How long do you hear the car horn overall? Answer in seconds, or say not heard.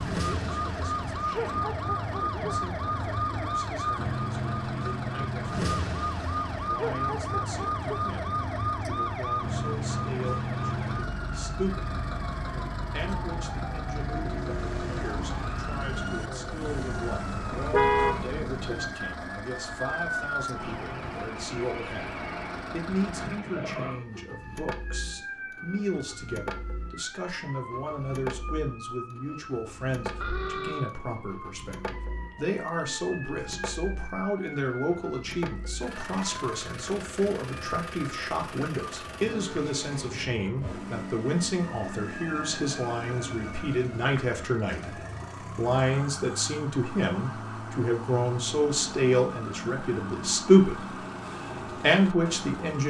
2 s.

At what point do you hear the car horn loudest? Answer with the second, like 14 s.
18 s.